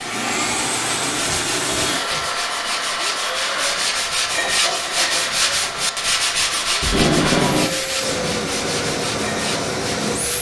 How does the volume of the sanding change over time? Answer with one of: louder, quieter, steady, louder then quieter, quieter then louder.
louder then quieter.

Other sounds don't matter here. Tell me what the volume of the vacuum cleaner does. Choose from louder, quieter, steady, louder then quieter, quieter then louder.
quieter then louder.